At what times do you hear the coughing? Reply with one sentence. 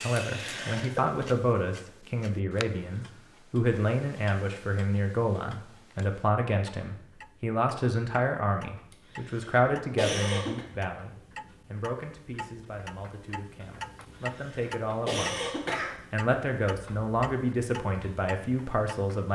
You can hear the coughing from 0.1 to 1.2 s, from 8.9 to 10.7 s and from 14.0 to 15.9 s.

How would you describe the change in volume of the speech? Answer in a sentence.
The volume of the speech goes down, then up.